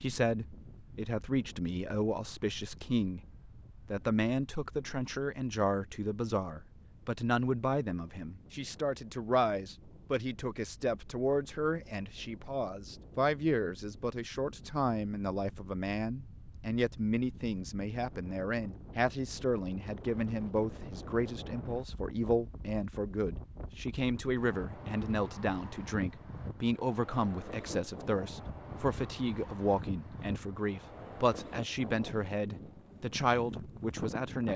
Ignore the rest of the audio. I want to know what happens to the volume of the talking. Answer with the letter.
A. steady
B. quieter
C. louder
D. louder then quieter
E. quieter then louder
A.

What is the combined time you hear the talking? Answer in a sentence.
The talking can be heard for 34 seconds in total.